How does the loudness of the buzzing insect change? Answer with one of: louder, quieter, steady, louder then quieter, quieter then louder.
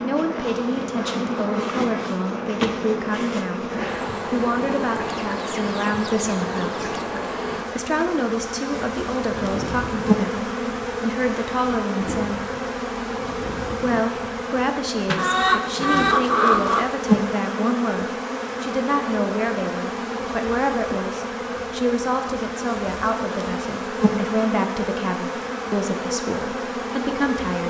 steady.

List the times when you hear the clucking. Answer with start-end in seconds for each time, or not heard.
5.0-7.0, 15.1-16.9.